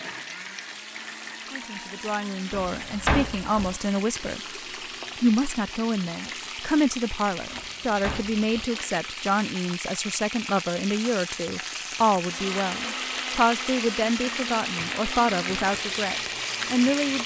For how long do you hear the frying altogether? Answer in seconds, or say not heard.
17 s.